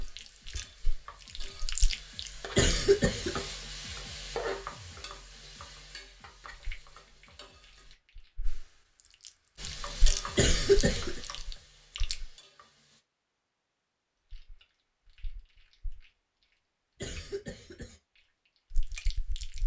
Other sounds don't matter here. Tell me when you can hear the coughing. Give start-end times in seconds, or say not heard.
2.5-3.4, 10.3-11.2, 17.0-18.0.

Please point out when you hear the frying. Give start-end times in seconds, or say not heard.
0.0-8.0, 9.6-13.0.